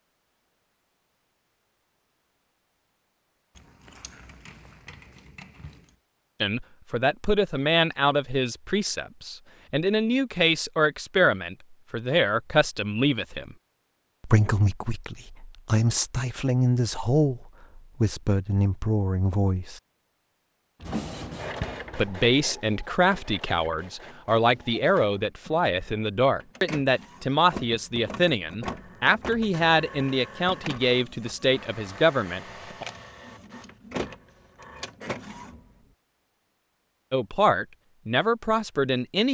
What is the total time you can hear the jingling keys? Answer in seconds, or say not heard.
4 s.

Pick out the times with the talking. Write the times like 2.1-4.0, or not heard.
6.4-13.6, 14.2-19.8, 21.9-32.9, 37.1-39.2.